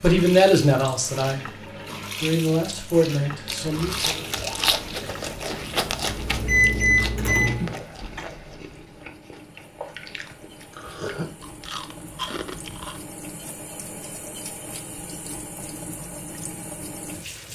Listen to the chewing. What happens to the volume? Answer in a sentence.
The volume of the chewing goes down, then up.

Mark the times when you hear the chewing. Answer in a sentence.
The chewing can be heard from 3.5 to 13.0 s.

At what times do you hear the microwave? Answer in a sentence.
The microwave can be heard from 6.0 to 8.3 s.